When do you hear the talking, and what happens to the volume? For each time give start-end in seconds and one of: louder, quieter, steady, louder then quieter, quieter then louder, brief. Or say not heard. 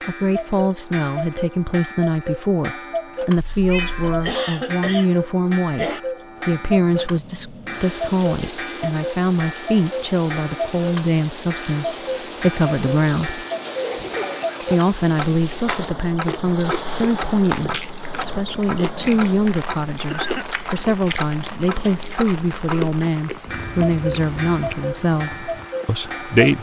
0.1-13.4 steady
14.7-26.5 steady.